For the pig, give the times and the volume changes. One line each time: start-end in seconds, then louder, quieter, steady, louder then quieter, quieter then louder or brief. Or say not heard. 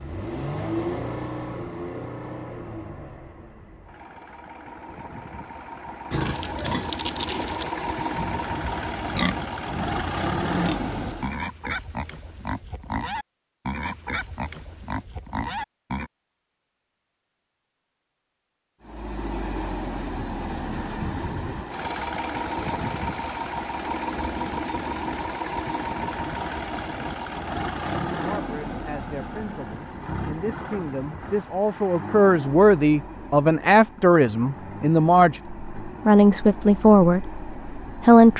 6.1-16.1 steady.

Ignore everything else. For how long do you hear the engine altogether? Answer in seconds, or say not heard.
31 s.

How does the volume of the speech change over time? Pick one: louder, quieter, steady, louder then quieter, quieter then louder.
louder.